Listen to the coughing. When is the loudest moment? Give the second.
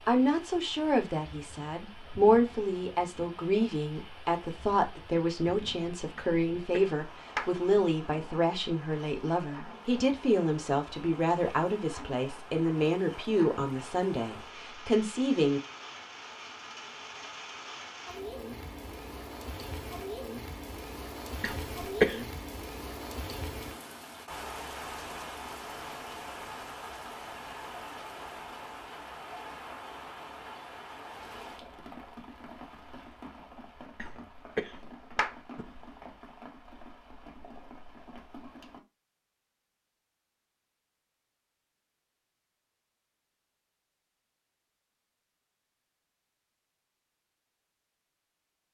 22 s.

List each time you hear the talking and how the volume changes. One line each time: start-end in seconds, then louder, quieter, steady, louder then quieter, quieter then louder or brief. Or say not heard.
0.1-15.6 steady.